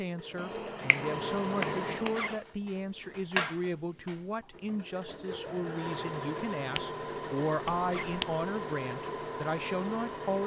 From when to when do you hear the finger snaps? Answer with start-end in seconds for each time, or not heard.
0.3-2.4, 7.7-8.4.